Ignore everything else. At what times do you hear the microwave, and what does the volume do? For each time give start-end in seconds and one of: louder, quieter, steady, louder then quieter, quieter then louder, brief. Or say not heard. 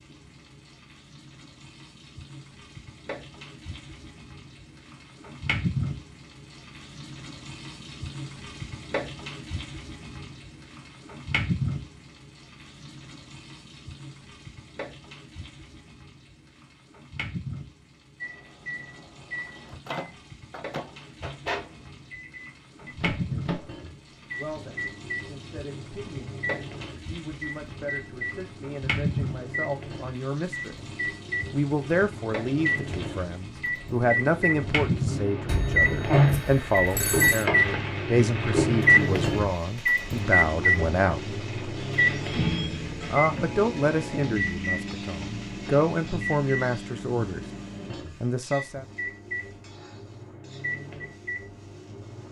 18.2-52.2 louder then quieter.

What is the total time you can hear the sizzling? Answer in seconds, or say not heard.
52 s.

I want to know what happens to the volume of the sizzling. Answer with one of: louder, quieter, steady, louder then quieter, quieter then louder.
louder then quieter.